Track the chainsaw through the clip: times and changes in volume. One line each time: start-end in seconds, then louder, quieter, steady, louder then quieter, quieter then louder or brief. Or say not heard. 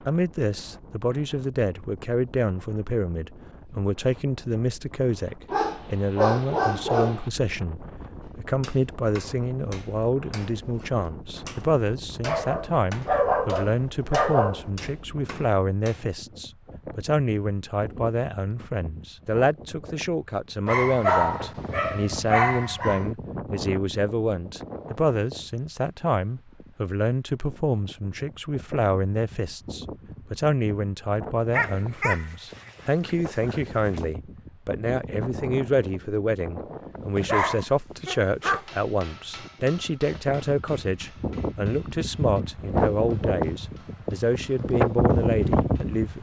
not heard.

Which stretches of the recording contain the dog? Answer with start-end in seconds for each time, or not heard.
5.5-7.2, 12.2-14.7, 20.6-23.1, 31.5-34.0, 37.1-38.6.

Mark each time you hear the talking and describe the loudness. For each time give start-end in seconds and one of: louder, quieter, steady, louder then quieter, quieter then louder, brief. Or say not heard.
0.1-46.1 steady.